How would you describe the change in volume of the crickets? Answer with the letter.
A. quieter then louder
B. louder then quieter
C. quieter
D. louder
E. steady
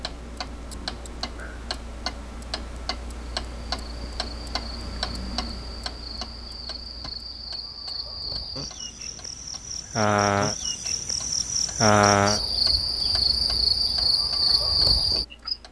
D.